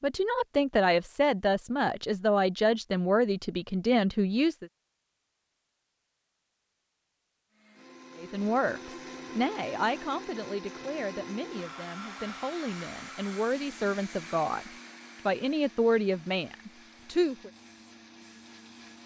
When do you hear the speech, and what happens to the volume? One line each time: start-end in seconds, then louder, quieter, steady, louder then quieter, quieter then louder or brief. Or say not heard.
0.0-4.7 steady
8.2-17.5 quieter then louder.